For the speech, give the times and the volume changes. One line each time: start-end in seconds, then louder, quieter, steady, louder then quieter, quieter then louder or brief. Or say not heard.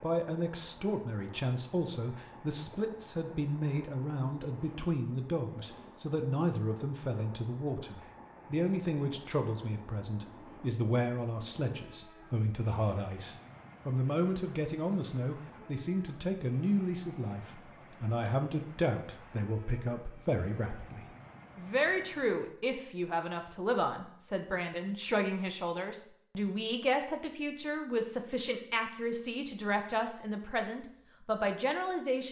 0.0-32.2 steady.